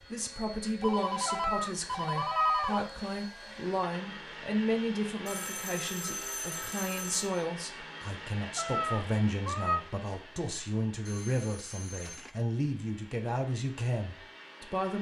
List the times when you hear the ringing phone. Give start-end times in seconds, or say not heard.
0.8-2.9, 5.2-7.5, 11.1-12.4.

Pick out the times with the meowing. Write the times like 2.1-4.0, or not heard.
1.2-2.9, 8.6-9.8.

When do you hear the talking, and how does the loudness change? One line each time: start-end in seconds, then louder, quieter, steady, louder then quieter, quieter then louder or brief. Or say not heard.
0.1-14.9 steady.